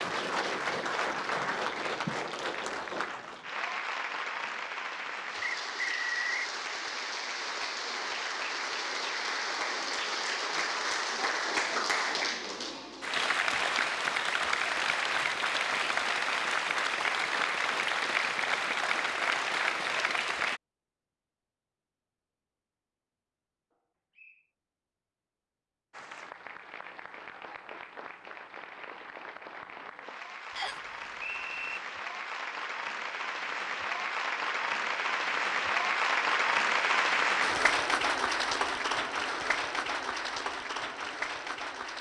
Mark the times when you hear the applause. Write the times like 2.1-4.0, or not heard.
0.0-20.6, 25.9-41.9.